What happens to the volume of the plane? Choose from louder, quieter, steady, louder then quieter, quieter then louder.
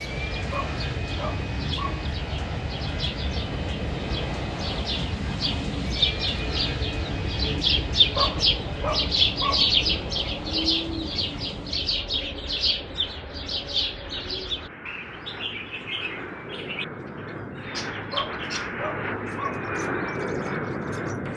quieter then louder.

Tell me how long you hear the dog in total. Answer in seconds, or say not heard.
5 s.